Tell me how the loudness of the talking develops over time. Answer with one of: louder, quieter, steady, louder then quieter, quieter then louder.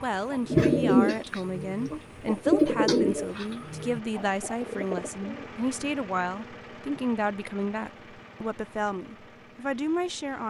steady.